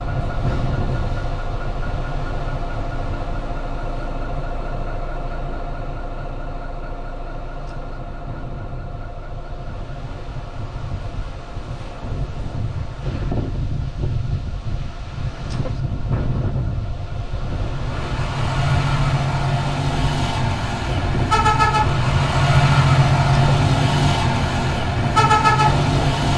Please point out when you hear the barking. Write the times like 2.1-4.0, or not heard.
not heard.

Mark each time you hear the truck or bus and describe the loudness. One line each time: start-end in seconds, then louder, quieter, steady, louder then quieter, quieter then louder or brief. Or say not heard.
0.0-26.3 quieter then louder.